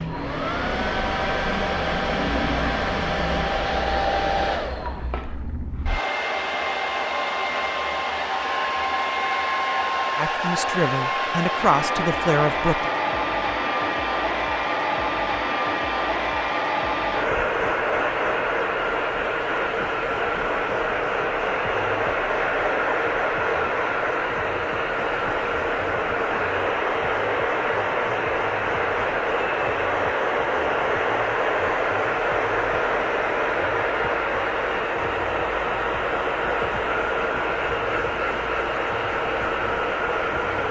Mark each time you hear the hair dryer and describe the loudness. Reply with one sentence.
You can hear the hair dryer from 0.0 to 40.6 s, at a steady volume.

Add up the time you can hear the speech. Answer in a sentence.
The speech can be heard for 3 seconds in total.